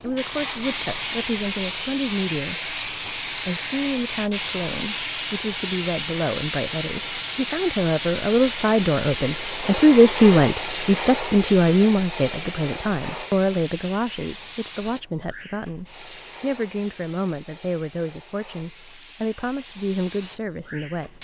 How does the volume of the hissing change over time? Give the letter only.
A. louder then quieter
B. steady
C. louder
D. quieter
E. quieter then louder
D.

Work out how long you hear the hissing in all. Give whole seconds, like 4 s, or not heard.
21 s.